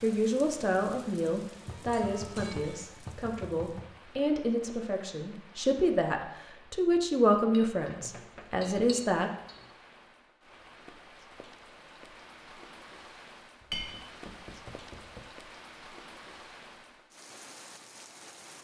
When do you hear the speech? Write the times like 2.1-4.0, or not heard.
0.0-9.3.